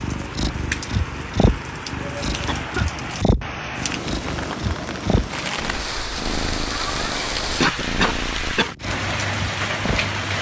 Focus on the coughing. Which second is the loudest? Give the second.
8 s.